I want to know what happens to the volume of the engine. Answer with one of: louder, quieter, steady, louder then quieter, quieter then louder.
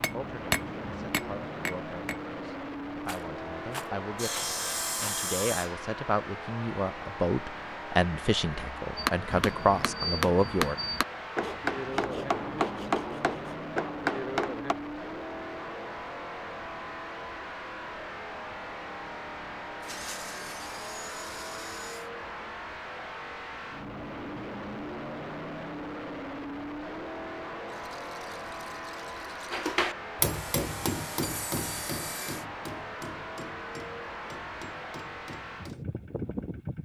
steady.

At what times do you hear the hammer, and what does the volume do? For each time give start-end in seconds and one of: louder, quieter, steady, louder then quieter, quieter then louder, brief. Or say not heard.
0.0-2.2 brief
8.9-14.8 steady
29.5-35.9 quieter.